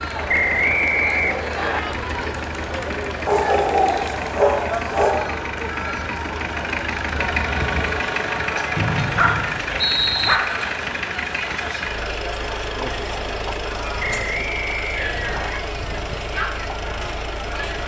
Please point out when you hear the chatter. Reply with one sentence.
You can hear the chatter from 0.0 to 17.8 s.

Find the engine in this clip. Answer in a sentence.
You can hear the engine from 0.0 to 17.8 s.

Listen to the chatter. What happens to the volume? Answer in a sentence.
The volume of the chatter stays about the same.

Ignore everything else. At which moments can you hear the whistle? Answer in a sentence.
The whistle can be heard from 0.2 to 1.8 s, from 8.8 to 10.4 s and from 13.9 to 15.6 s.